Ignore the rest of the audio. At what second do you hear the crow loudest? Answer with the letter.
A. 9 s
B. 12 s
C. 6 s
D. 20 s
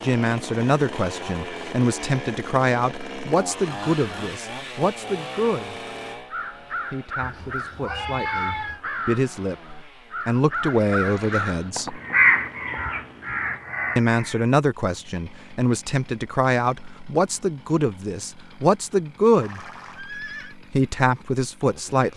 B.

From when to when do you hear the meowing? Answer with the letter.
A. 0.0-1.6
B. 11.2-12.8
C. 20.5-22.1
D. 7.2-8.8
D.